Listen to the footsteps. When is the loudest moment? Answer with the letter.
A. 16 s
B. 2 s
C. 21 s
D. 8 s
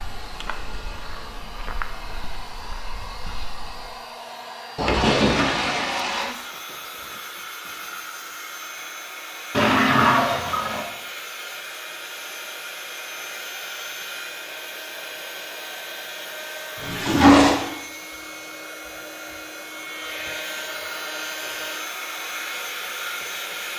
B.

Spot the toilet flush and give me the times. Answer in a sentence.
The toilet flush can be heard from 4.8 to 6.3 s, from 9.5 to 10.8 s and from 16.8 to 17.6 s.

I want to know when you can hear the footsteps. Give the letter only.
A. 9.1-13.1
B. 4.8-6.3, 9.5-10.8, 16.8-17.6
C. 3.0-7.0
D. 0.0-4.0
D.